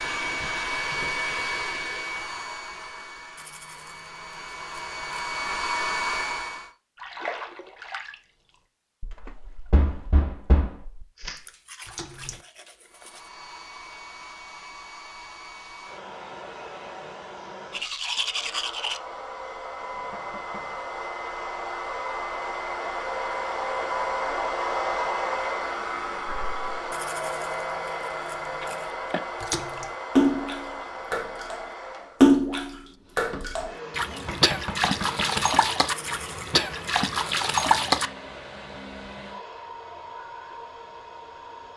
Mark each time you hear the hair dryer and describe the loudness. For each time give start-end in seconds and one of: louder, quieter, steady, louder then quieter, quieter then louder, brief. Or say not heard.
0.0-6.7 quieter then louder
12.8-41.7 louder then quieter.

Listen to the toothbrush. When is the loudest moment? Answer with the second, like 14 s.
18 s.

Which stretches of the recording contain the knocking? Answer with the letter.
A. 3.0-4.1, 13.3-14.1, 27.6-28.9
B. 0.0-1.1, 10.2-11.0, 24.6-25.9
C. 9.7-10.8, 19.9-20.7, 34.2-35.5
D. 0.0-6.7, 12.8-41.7
C.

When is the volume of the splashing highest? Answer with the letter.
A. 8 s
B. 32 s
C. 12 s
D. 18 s
B.